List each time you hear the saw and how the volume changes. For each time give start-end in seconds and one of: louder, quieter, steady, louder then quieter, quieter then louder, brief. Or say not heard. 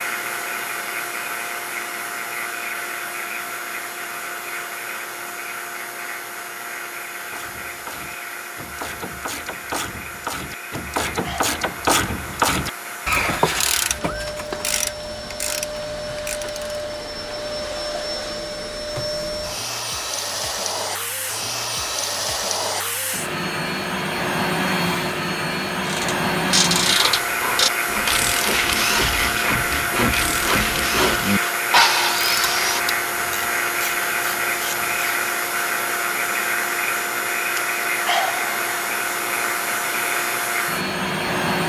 26.8-32.9 louder.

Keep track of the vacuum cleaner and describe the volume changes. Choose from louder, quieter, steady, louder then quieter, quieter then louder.
louder.